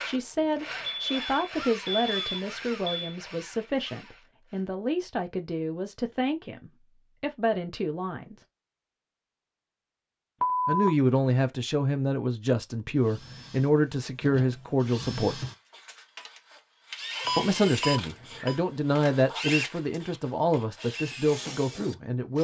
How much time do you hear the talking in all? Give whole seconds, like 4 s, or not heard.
18 s.